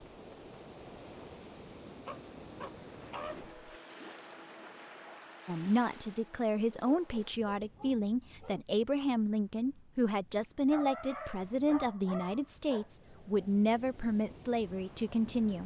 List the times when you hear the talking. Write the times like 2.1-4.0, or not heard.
5.5-15.6.